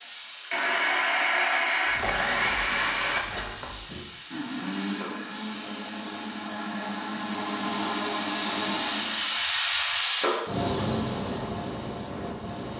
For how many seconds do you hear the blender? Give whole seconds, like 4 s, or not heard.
9 s.